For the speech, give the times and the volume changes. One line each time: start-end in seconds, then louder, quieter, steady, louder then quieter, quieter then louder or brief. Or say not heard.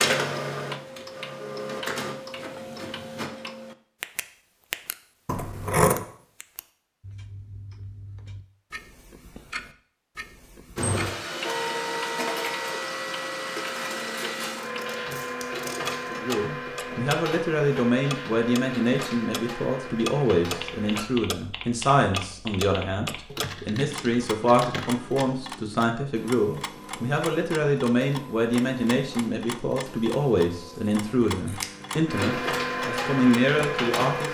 16.1-34.2 steady.